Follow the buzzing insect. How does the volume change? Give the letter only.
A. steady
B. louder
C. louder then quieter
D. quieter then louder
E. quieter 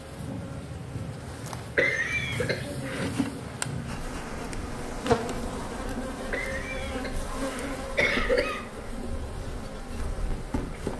C.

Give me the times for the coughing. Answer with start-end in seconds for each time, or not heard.
1.8-3.1, 6.3-8.9.